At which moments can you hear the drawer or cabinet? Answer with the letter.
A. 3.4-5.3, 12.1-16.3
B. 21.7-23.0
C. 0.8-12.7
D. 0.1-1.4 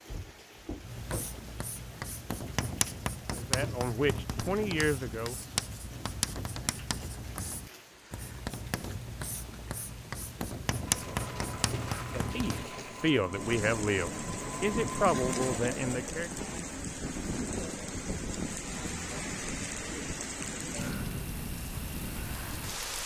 D.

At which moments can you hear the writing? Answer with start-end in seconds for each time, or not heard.
0.8-12.7.